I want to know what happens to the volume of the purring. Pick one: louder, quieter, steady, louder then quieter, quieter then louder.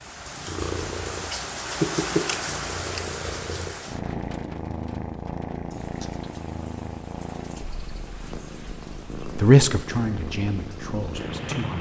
quieter.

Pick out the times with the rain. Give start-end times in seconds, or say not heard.
0.0-11.7.